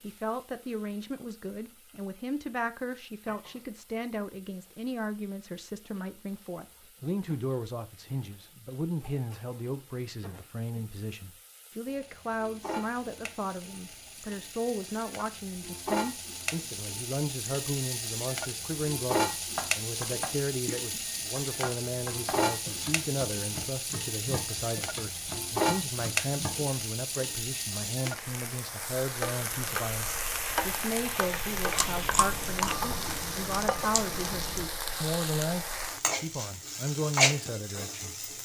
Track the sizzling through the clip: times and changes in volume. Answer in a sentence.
You can hear the sizzling from 0.0 to 38.4 s, getting louder.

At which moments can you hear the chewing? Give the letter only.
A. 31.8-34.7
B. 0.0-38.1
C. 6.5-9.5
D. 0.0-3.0
A.